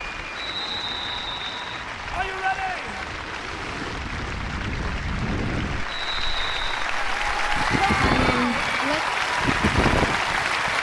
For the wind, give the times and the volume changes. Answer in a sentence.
You can hear the wind from 0.0 to 10.7 s, getting louder.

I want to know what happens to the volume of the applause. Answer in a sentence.
The volume of the applause goes up.